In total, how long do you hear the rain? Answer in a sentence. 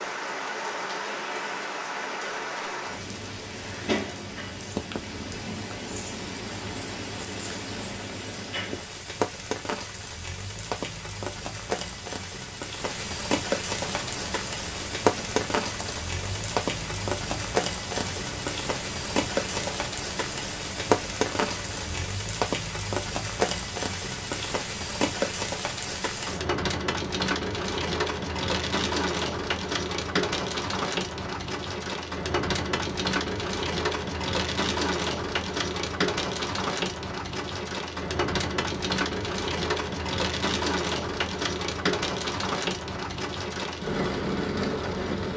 You can hear the rain for 45 seconds altogether.